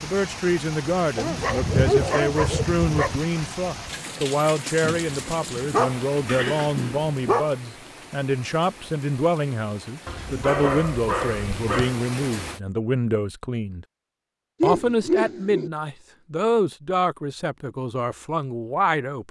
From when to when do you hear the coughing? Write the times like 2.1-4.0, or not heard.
6.2-7.0.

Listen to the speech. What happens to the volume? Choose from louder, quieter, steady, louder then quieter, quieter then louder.
steady.